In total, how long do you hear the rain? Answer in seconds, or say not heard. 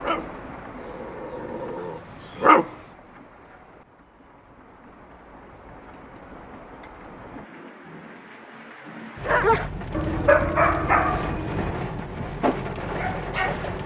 14 s.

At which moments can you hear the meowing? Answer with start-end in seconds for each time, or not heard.
not heard.